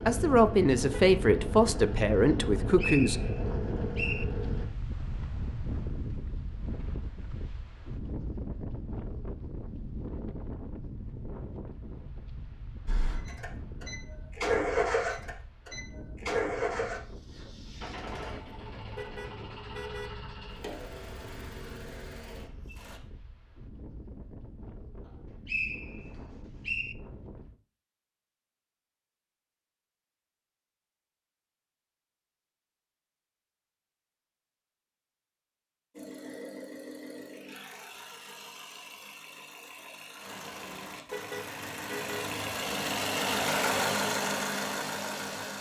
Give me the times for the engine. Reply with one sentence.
The engine can be heard from 0.0 to 4.7 s, from 12.8 to 23.0 s and from 36.0 to 45.5 s.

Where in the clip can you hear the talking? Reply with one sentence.
The talking can be heard from 0.1 to 3.3 s.